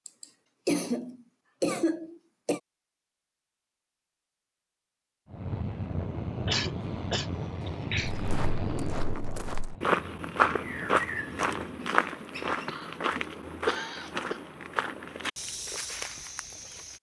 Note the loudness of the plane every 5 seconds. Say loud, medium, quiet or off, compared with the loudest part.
off, loud, quiet, off.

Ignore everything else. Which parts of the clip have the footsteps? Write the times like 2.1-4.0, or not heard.
8.1-16.9.